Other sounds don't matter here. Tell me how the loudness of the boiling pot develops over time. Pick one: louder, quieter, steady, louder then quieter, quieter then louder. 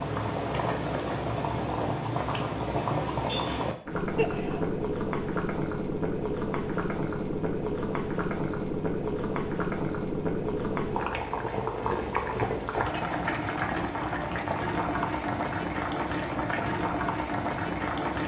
steady.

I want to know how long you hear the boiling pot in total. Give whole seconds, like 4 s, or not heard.
18 s.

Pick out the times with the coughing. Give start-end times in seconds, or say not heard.
4.2-4.8.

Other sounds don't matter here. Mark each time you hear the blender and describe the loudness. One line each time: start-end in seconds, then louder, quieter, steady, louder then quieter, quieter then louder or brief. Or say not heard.
not heard.